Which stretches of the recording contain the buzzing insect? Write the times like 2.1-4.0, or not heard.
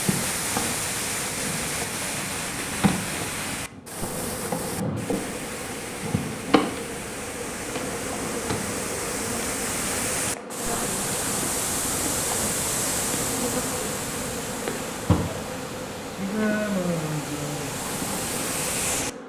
0.0-19.2.